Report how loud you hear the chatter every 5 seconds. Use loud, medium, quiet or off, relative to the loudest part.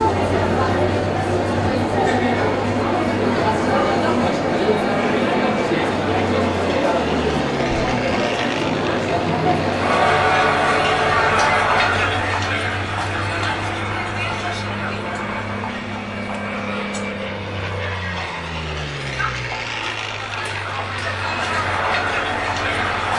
loud, loud, loud, quiet, medium.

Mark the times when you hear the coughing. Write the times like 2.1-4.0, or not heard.
not heard.